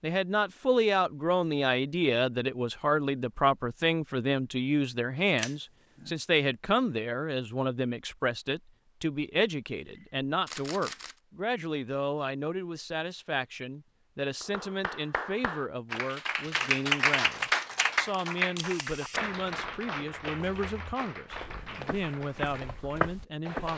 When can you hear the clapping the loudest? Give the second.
17 s.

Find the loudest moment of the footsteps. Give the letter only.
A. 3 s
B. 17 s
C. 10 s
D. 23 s
D.